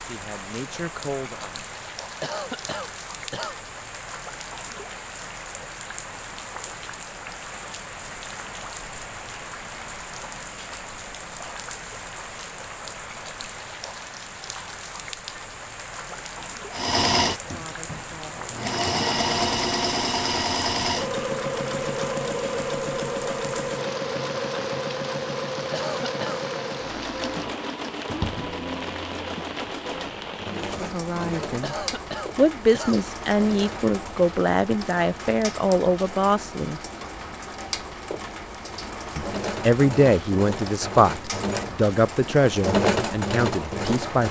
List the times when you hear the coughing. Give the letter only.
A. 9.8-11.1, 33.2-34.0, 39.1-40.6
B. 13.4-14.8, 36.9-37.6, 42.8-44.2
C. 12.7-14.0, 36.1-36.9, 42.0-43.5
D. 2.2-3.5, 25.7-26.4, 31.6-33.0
D.